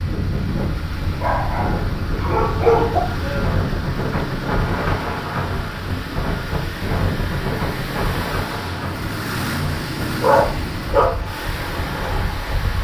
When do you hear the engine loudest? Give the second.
10 s.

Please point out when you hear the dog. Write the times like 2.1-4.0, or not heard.
1.0-3.0, 10.2-11.2.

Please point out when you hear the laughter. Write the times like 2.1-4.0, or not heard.
not heard.